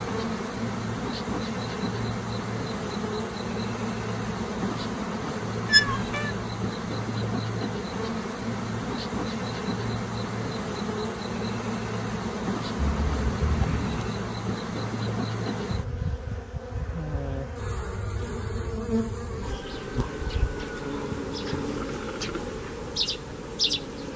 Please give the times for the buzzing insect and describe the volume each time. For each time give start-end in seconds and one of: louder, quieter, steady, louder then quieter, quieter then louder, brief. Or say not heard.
0.0-24.1 steady.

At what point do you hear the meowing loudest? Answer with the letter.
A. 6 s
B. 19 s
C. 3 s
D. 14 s
A.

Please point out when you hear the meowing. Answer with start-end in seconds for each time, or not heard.
5.7-6.3, 12.8-14.1.